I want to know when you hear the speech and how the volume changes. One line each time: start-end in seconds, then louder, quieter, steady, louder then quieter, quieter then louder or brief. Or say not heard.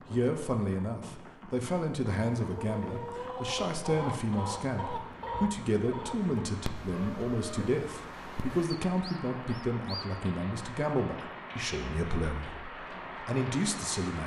0.1-14.2 steady.